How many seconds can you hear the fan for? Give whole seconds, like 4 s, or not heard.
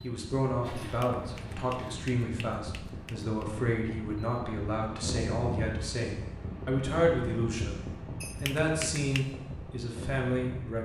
11 s.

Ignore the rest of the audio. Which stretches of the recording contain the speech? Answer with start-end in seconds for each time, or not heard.
0.0-7.8, 8.4-10.8.